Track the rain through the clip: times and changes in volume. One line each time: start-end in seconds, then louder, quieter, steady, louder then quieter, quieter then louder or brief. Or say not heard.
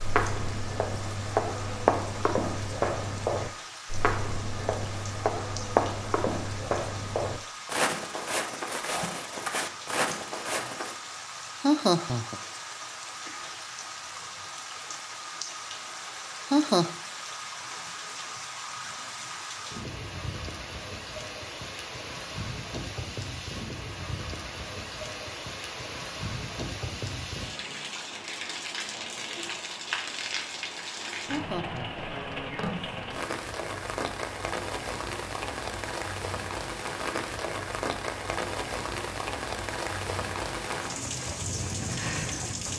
0.0-42.7 louder.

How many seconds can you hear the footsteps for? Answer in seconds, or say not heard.
11 s.